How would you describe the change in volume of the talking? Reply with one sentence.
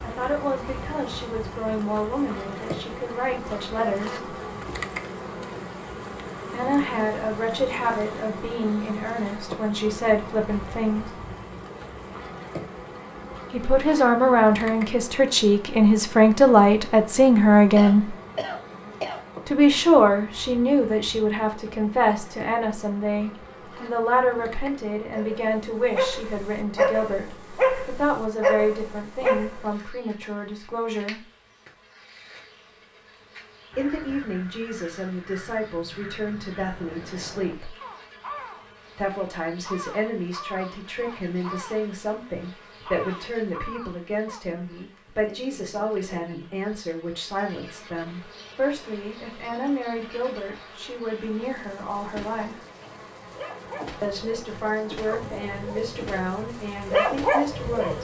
The volume of the talking goes up, then down.